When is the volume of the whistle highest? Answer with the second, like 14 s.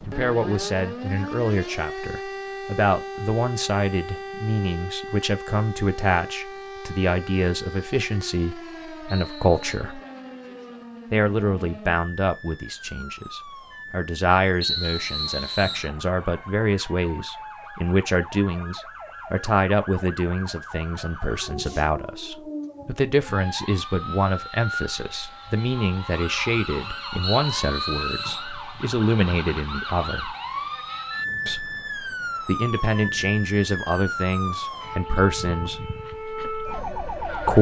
15 s.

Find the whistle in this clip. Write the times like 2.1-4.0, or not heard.
9.1-9.6, 14.6-15.9, 27.2-28.5.